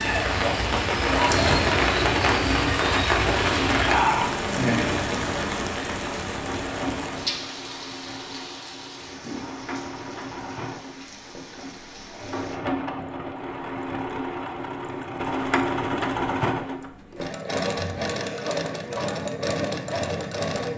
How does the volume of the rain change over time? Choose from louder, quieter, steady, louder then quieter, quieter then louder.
quieter.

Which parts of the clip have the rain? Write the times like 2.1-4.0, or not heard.
0.0-12.6.